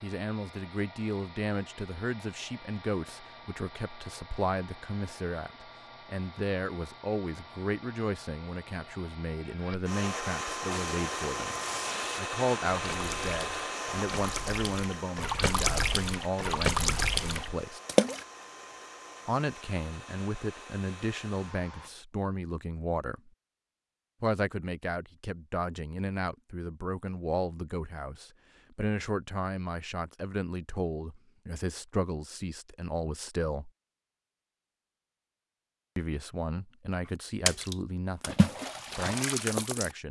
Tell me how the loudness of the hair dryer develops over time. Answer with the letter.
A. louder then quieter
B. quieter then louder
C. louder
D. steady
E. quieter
A.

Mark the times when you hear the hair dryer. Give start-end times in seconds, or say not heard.
0.0-21.9.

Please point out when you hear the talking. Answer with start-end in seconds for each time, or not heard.
0.0-11.6, 12.2-17.8, 19.2-23.3, 24.2-33.7, 36.0-40.0.